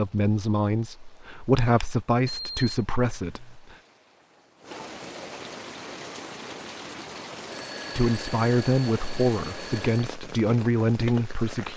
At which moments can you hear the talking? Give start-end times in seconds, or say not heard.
0.0-3.8, 8.0-11.7.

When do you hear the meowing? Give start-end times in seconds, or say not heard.
not heard.